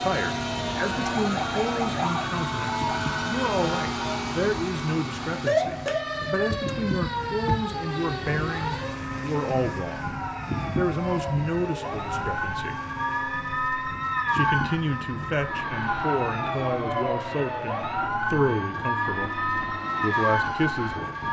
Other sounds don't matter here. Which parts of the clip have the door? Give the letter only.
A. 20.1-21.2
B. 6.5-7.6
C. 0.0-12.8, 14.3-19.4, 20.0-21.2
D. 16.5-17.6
B.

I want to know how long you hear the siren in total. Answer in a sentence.
The siren can be heard for 21 seconds in total.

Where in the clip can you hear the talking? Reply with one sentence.
You can hear the talking from 0.0 to 12.8 s, from 14.3 to 19.4 s and from 20.0 to 21.2 s.